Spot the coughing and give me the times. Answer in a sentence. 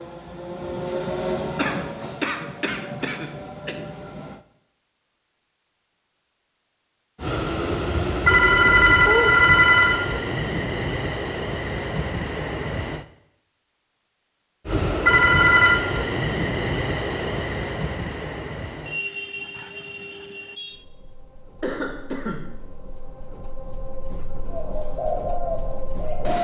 You can hear the coughing from 1.6 to 3.8 s and from 21.6 to 22.6 s.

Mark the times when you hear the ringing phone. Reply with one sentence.
You can hear the ringing phone from 8.2 to 10.0 s and from 15.1 to 15.8 s.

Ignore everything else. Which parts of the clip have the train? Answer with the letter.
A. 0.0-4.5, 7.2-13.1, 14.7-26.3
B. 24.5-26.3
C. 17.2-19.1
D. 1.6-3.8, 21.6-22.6
A.